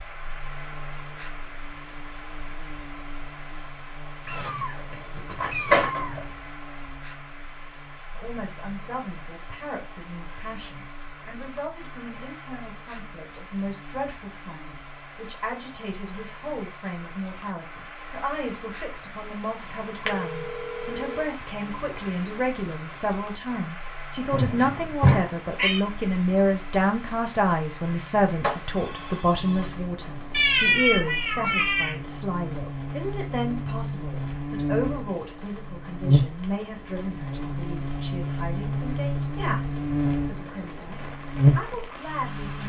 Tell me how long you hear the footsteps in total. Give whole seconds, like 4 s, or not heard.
not heard.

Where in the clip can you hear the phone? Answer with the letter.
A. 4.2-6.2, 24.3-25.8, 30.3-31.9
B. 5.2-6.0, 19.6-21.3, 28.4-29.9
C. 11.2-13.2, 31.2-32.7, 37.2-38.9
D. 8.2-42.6
B.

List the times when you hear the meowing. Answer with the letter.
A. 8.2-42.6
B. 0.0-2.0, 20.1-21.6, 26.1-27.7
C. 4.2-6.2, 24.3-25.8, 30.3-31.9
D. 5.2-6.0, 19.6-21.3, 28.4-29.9
C.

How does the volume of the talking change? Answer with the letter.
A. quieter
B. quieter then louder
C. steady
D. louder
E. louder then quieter
E.